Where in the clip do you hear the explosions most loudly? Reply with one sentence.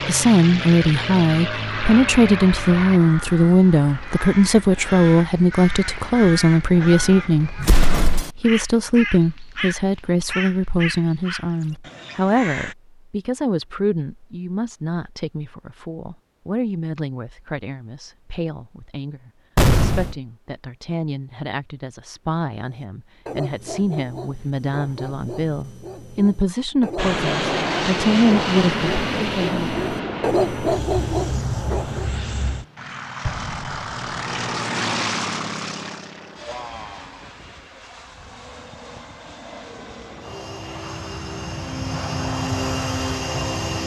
The loudest moment of the explosions is at 20 seconds.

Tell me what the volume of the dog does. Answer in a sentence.
The loudness of the dog goes up.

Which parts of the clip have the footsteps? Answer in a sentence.
The footsteps can't be heard in this clip.